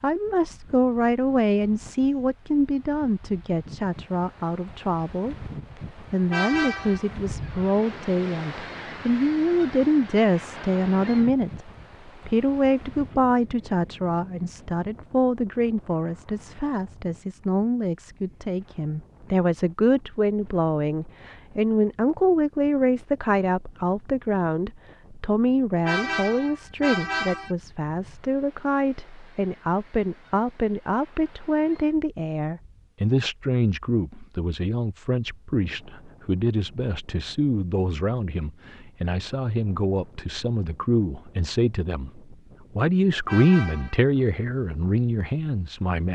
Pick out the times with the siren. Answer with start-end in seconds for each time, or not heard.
not heard.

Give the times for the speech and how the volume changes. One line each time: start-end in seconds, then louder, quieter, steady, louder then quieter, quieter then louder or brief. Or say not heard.
0.0-46.1 steady.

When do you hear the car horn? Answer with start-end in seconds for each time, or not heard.
6.3-7.0, 25.9-27.6, 43.2-44.0.